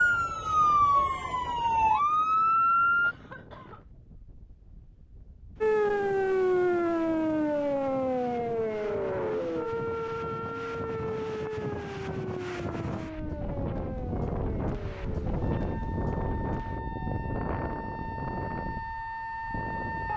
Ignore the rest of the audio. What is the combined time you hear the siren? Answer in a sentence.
The siren can be heard for 18 seconds in total.